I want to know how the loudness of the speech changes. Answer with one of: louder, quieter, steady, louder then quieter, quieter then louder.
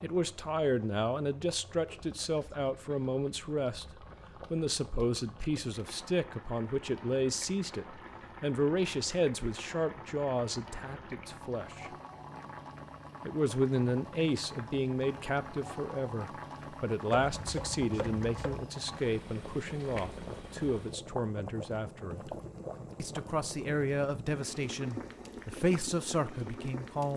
steady.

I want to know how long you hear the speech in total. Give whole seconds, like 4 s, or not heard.
25 s.